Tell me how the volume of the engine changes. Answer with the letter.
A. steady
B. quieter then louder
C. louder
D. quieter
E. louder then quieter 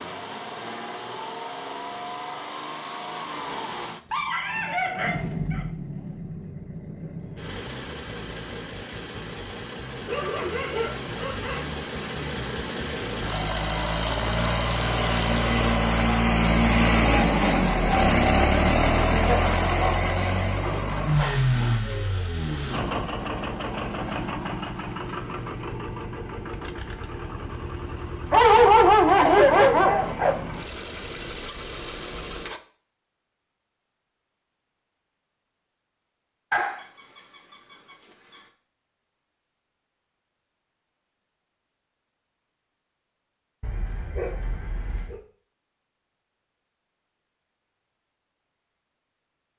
E.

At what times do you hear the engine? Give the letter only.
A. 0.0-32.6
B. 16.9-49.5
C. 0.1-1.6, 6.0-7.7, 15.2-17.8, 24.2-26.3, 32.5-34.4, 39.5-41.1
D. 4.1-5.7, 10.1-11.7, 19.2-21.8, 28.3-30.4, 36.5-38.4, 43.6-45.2
A.